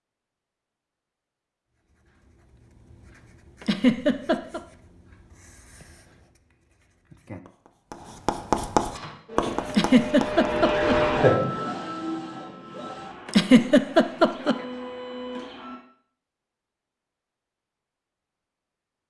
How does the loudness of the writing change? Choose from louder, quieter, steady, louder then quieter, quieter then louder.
louder.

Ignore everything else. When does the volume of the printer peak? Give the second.
11 s.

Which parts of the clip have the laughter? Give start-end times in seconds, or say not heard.
3.6-4.6, 9.7-11.0, 13.2-14.6.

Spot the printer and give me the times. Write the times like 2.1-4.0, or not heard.
8.9-15.8.